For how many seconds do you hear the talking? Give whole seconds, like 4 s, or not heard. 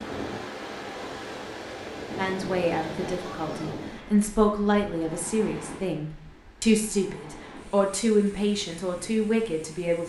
8 s.